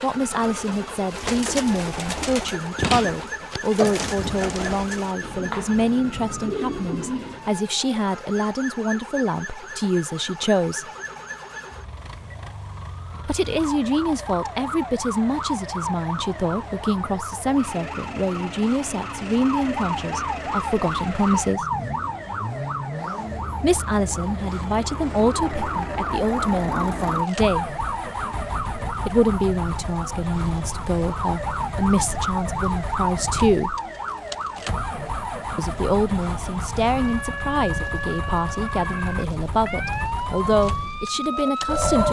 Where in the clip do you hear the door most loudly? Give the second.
3 s.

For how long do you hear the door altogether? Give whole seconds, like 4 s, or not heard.
2 s.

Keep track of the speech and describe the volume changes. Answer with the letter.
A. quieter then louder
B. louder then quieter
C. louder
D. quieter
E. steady
E.